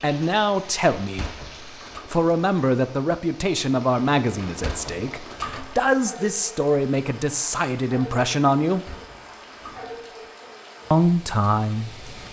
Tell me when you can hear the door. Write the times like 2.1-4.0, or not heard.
1.0-2.0, 4.3-5.9, 8.7-10.1.